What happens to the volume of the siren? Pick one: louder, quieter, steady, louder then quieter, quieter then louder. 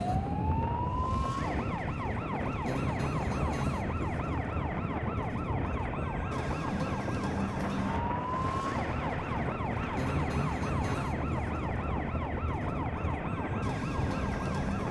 steady.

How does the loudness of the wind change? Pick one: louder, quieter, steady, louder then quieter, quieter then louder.
steady.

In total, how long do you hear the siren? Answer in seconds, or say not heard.
15 s.